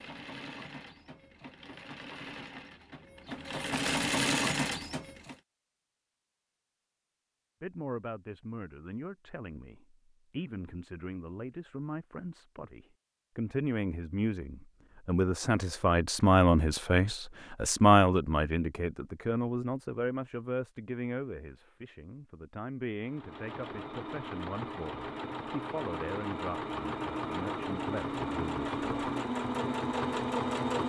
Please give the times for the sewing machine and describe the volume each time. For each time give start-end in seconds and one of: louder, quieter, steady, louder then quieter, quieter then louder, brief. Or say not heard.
0.0-5.3 louder
23.0-30.8 louder.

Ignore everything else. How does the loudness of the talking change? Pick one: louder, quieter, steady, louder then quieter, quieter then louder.
louder then quieter.